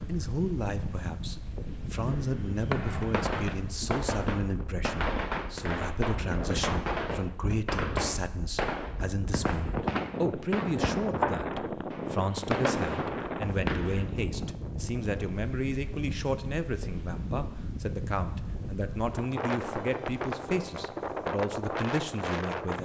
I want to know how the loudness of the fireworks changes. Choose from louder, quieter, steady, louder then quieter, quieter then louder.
steady.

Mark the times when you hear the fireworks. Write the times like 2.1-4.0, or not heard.
2.0-14.2.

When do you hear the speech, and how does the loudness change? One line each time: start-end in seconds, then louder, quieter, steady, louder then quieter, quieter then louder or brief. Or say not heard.
0.1-22.8 steady.